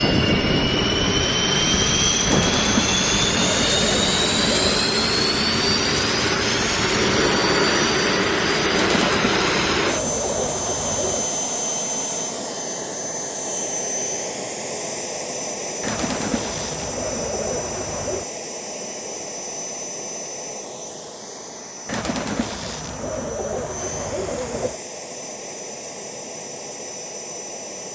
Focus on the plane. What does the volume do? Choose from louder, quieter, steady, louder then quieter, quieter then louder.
quieter.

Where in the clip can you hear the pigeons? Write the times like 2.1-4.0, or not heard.
2.2-4.8, 8.7-11.3, 15.8-18.3, 21.9-24.8.